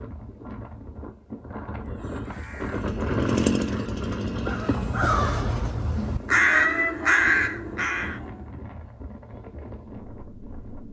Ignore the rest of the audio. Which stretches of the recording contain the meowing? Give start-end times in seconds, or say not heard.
6.0-7.0.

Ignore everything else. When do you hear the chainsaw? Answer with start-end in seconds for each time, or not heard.
2.6-5.0.